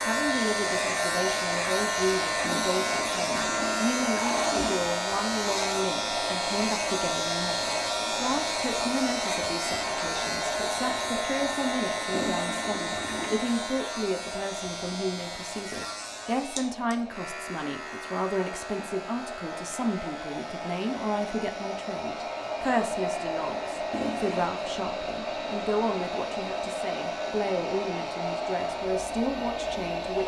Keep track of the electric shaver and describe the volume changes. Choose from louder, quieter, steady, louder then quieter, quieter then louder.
quieter.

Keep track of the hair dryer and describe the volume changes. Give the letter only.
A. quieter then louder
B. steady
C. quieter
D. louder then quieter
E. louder
A.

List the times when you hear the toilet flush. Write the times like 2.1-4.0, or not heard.
2.4-4.9, 12.1-13.4, 23.9-24.5.